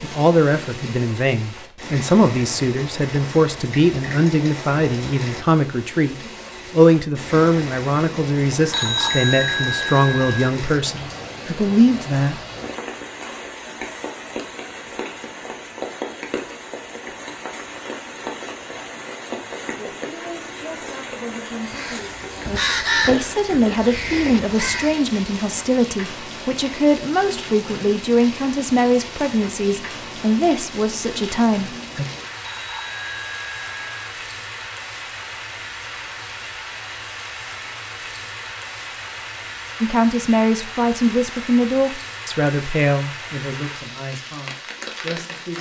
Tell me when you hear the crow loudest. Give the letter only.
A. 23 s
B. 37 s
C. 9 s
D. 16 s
A.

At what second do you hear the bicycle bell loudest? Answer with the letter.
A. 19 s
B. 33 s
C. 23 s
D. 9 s
D.